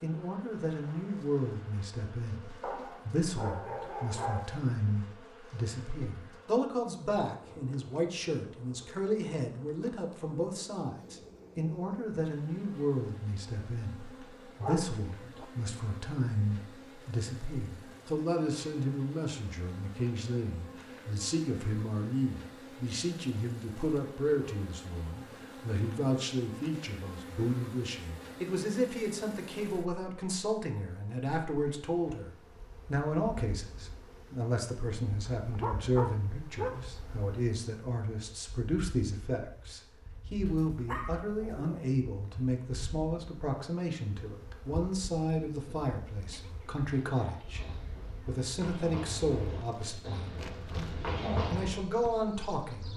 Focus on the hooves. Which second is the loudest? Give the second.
51 s.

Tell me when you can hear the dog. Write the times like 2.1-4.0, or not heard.
2.6-4.6, 14.6-15.4, 35.4-36.9, 40.5-42.0.